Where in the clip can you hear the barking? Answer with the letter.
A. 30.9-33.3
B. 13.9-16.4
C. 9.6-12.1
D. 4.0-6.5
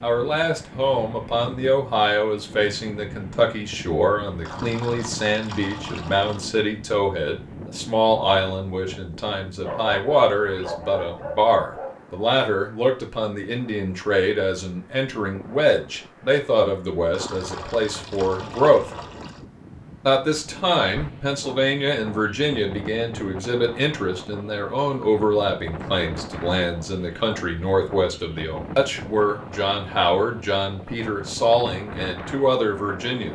C.